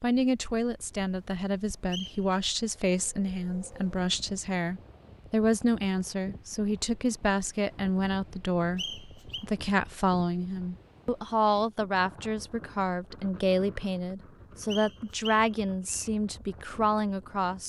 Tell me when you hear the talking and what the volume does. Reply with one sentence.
The talking can be heard from 0.0 to 17.6 s, at a steady volume.